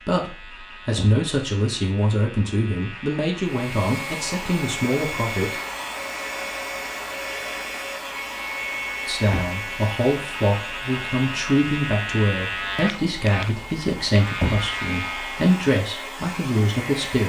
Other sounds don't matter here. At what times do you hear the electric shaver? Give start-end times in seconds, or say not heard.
0.0-15.7.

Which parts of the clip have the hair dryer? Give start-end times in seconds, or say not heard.
3.4-17.2.